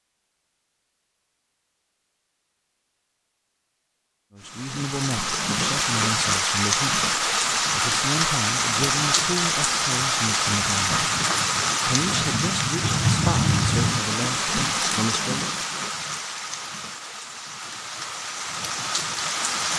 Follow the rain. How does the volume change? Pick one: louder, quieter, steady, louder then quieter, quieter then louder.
quieter.